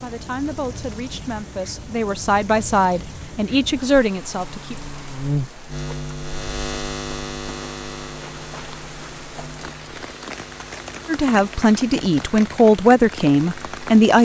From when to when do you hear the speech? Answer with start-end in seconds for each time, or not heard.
0.0-4.8, 11.1-14.1.